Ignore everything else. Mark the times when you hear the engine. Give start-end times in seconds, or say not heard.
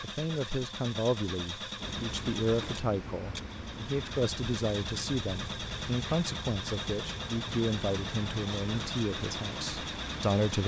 0.0-10.6.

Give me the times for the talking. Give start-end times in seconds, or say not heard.
0.0-10.6.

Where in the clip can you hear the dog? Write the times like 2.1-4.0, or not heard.
not heard.